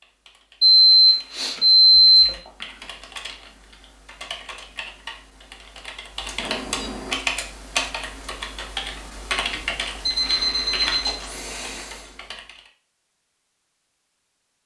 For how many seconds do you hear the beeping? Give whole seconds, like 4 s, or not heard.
4 s.